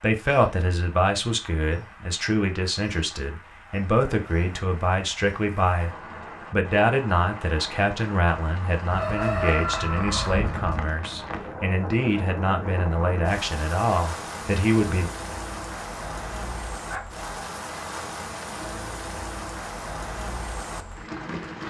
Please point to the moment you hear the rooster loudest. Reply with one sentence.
The volume of the rooster peaks at 9 seconds.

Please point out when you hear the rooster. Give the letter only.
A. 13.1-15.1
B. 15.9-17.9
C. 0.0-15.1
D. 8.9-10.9
D.